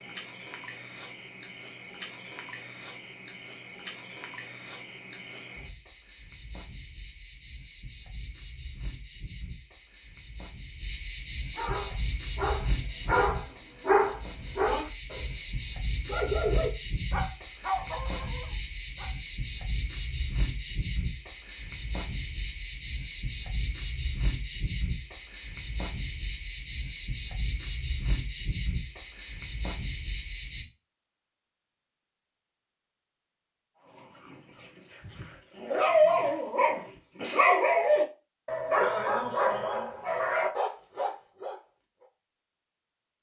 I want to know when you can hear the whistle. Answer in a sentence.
You can't hear the whistle here.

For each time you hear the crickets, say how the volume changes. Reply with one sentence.
The crickets can be heard from 0.0 to 30.6 s, getting louder.